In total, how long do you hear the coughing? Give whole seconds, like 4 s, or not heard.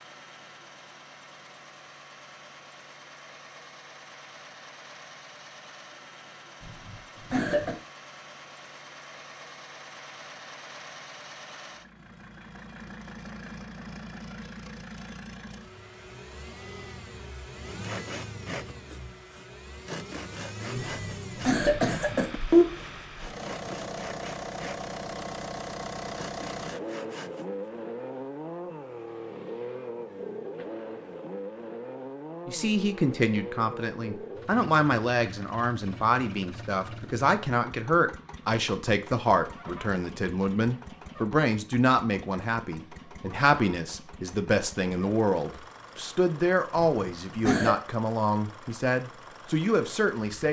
4 s.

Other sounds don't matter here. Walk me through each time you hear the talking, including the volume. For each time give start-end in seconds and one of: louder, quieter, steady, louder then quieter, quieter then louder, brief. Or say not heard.
32.5-50.4 steady.